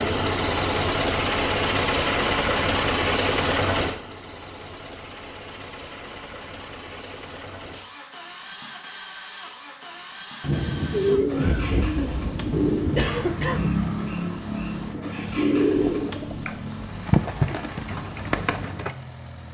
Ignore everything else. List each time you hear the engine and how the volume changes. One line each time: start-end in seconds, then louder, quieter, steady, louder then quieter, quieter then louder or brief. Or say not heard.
0.0-19.4 quieter.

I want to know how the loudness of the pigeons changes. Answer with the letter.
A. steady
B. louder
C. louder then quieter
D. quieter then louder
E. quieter
A.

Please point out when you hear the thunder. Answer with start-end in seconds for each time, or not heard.
10.4-13.3.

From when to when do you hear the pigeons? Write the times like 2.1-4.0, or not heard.
10.9-18.9.